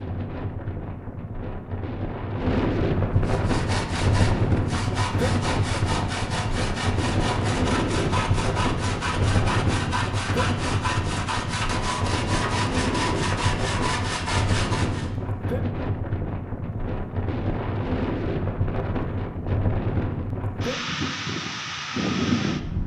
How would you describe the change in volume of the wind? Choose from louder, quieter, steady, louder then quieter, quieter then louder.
steady.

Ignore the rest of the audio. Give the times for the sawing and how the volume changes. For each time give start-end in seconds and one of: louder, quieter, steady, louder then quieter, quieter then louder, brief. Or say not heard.
3.2-15.1 steady.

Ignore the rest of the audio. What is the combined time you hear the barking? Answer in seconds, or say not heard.
not heard.